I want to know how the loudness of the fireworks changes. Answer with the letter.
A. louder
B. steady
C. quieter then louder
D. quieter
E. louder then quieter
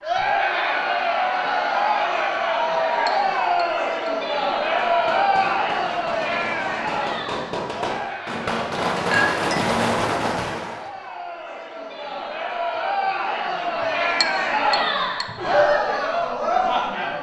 A.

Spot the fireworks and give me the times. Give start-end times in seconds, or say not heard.
4.6-10.9.